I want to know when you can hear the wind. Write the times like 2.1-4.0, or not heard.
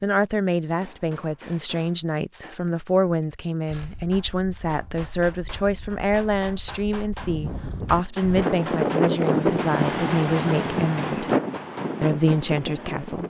3.8-13.2.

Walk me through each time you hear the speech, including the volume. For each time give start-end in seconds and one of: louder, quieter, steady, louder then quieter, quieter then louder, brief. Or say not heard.
0.0-11.3 steady
12.0-13.2 brief.